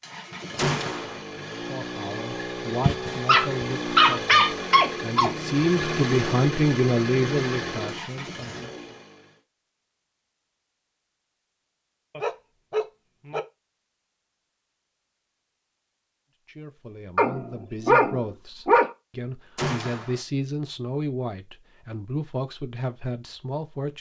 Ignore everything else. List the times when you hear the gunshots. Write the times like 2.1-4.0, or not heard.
0.6-1.2, 19.6-20.2.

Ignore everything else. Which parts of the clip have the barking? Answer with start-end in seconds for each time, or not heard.
2.8-5.3, 12.1-13.4, 17.1-18.9.